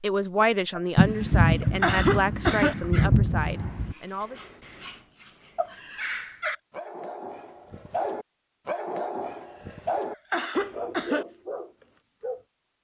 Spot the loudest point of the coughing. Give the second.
2 s.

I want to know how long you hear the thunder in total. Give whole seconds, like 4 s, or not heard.
3 s.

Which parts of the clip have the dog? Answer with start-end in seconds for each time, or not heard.
2.6-12.4.